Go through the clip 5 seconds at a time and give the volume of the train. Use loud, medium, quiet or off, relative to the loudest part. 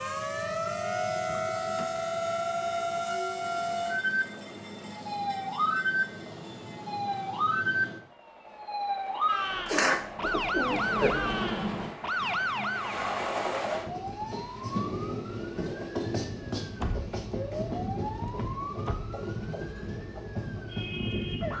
medium, medium, loud, loud, loud.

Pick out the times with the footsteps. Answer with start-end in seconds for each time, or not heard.
not heard.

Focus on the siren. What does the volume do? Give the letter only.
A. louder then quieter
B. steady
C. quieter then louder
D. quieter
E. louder
D.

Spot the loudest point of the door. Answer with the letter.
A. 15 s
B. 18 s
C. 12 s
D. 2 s
C.